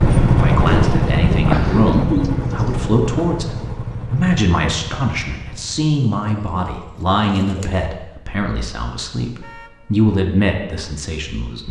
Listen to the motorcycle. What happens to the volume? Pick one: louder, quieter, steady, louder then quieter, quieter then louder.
quieter.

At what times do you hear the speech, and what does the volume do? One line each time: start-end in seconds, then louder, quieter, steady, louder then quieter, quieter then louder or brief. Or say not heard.
0.2-11.6 steady.